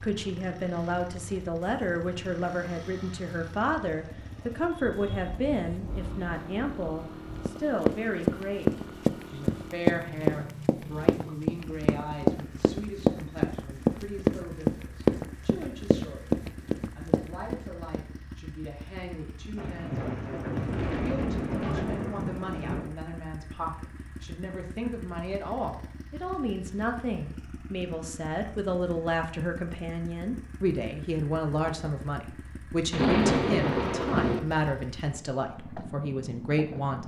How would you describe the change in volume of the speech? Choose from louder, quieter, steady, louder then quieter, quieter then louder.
quieter then louder.